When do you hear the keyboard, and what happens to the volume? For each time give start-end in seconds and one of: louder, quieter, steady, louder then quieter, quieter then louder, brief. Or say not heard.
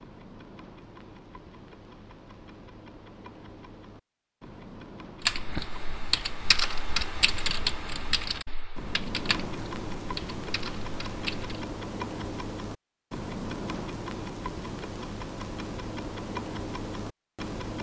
5.2-11.7 quieter.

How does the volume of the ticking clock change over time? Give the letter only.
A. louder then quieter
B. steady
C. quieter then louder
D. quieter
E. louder
E.